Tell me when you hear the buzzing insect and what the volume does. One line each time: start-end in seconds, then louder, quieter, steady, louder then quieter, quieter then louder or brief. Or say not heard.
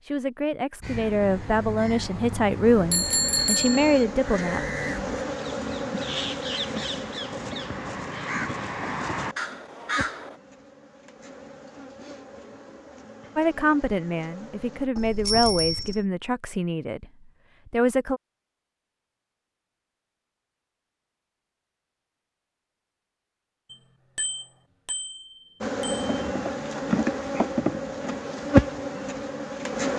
2.6-14.9 quieter
25.6-29.9 louder then quieter.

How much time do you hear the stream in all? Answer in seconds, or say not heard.
not heard.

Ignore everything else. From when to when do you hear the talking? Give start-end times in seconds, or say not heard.
0.1-4.8, 13.3-17.1, 17.6-18.2.